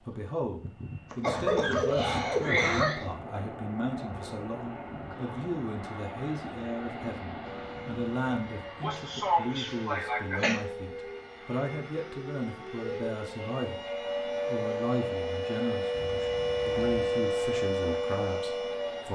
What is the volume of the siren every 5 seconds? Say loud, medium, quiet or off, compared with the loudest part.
off, quiet, medium, loud.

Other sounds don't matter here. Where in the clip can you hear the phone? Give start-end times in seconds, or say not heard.
not heard.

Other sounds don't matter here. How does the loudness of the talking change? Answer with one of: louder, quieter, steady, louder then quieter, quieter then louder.
steady.